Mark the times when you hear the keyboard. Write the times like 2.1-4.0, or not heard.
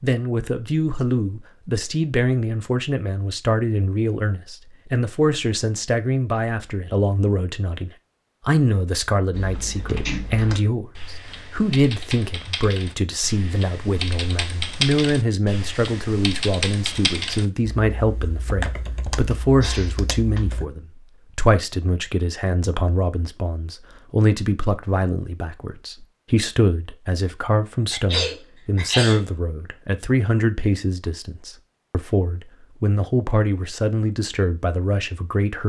9.3-20.6.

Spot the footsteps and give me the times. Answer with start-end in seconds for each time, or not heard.
not heard.